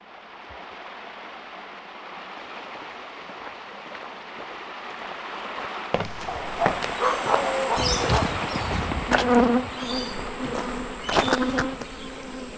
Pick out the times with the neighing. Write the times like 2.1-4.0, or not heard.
not heard.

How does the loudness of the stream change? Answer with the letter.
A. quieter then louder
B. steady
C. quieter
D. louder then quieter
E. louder
D.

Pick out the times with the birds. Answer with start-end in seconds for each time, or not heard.
not heard.